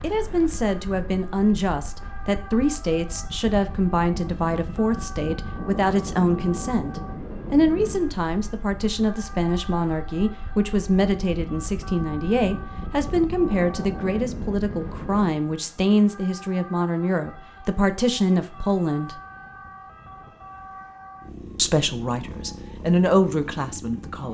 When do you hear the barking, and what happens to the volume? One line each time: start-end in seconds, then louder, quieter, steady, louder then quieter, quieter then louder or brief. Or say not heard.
not heard.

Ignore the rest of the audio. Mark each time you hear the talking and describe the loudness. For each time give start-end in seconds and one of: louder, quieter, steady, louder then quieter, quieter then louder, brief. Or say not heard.
0.0-19.2 steady
21.6-24.3 brief.